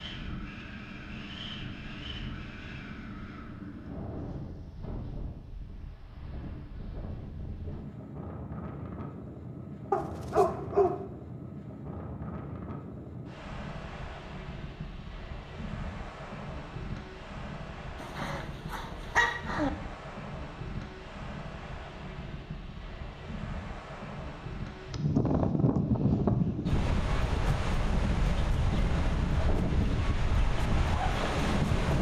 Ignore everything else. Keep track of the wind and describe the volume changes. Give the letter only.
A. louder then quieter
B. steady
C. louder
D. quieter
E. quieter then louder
C.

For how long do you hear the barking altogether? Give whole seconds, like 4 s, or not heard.
3 s.